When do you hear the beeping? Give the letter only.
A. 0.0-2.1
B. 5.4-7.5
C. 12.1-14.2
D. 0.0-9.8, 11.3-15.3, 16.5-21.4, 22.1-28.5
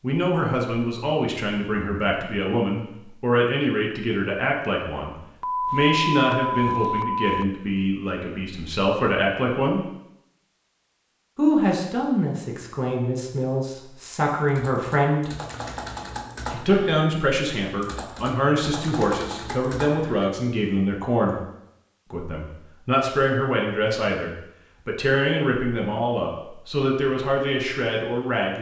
B.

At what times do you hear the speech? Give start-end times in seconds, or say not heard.
0.0-9.8, 11.3-15.3, 16.5-21.4, 22.1-28.5.